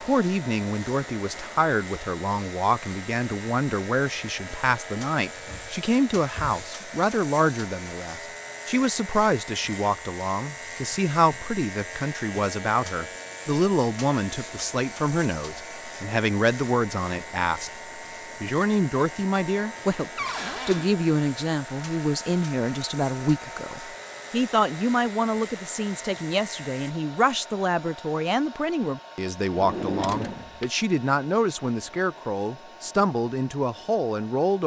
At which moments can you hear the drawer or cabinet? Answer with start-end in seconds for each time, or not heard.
5.3-6.6, 20.1-20.9, 29.5-30.6.